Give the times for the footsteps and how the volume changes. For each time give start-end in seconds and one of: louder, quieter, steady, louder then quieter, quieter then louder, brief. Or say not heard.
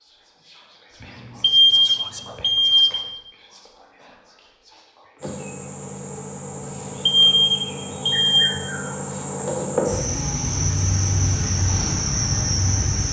not heard.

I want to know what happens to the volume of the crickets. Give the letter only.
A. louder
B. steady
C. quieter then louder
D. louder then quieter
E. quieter
A.